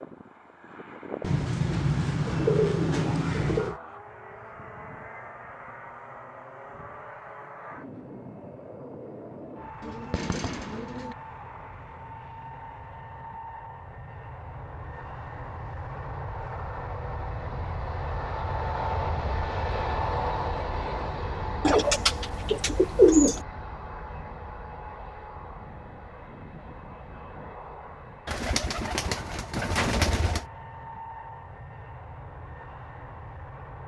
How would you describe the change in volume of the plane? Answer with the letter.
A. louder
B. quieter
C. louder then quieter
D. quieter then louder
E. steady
C.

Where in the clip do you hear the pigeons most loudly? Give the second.
23 s.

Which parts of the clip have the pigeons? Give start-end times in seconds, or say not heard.
1.2-3.8, 9.8-11.2, 21.6-23.4, 28.2-30.4.